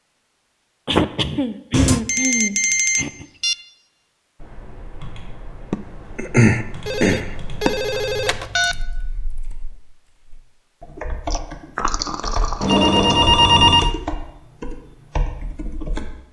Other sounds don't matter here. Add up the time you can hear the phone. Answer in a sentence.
The phone can be heard for 5 seconds in total.